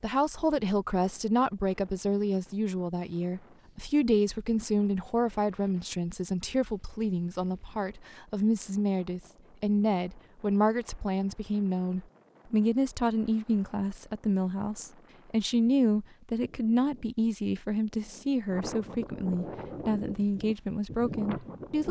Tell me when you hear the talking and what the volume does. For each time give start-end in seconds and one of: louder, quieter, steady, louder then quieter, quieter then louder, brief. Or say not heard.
0.0-21.8 steady.